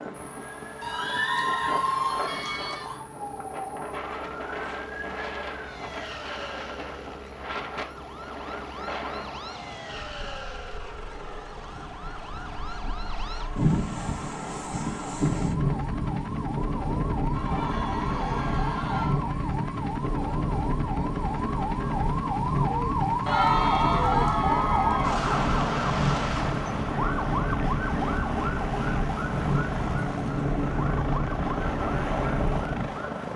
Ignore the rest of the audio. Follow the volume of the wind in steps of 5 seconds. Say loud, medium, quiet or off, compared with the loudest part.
medium, medium, loud, loud, loud, loud, loud.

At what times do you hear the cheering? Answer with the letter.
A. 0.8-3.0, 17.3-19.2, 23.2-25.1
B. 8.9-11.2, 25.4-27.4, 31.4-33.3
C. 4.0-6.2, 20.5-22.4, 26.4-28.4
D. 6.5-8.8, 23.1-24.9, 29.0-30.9
A.